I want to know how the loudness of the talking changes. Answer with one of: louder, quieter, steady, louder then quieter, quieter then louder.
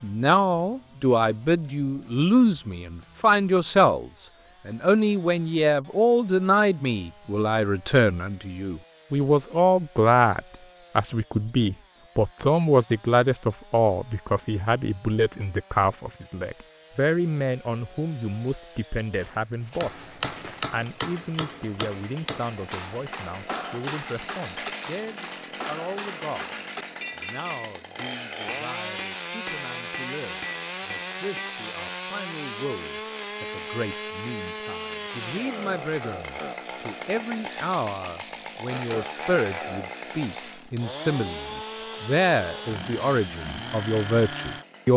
quieter then louder.